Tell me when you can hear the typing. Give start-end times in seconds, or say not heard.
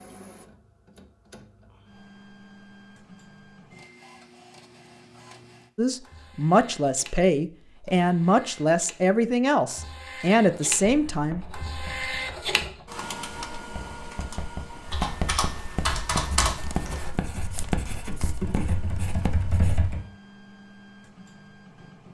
14.8-20.0.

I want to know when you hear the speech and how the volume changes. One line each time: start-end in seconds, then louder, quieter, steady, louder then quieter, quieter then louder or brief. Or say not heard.
5.8-11.4 steady.